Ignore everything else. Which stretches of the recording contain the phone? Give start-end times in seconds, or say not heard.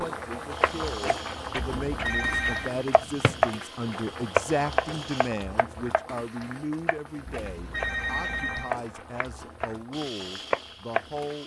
1.8-2.7, 7.2-8.8.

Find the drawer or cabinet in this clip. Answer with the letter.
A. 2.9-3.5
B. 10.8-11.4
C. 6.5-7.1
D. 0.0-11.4
A.